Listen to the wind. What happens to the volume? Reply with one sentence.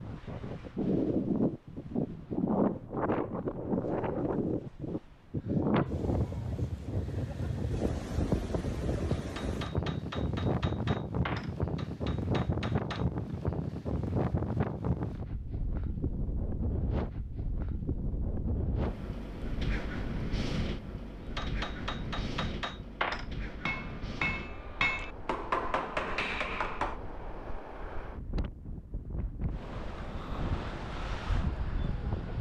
The loudness of the wind goes down.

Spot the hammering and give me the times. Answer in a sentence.
The hammering can be heard from 9.1 to 13.1 s and from 21.4 to 27.0 s.